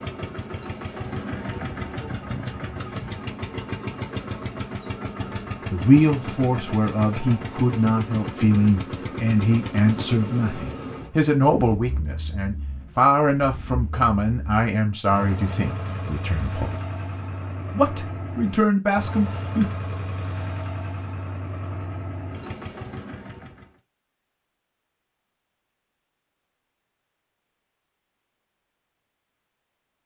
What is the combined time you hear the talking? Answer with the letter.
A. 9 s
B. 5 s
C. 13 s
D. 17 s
C.